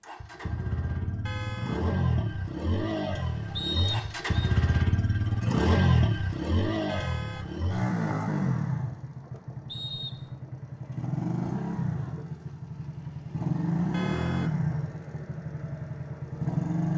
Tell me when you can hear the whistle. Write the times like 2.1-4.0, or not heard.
3.5-4.3, 9.7-10.3.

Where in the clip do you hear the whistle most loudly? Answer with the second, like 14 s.
4 s.